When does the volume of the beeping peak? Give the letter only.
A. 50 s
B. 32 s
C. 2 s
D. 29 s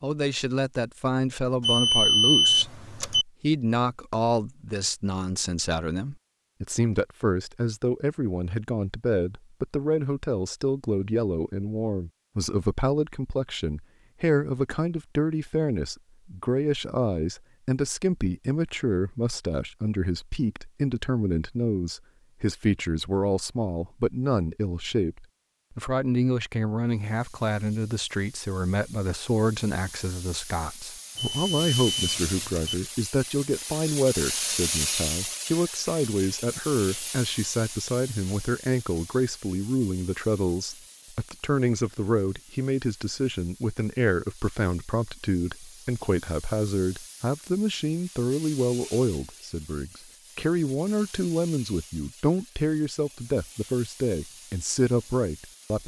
C.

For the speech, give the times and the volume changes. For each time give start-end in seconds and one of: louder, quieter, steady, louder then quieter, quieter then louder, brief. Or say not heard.
0.0-55.8 steady.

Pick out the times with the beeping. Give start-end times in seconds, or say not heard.
1.6-3.2, 31.1-32.8.